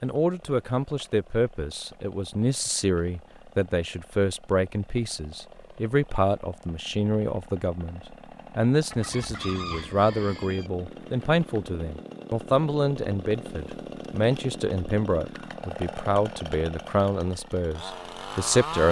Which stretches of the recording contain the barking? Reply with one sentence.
You can't hear the barking here.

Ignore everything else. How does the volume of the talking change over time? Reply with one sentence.
The loudness of the talking stays about the same.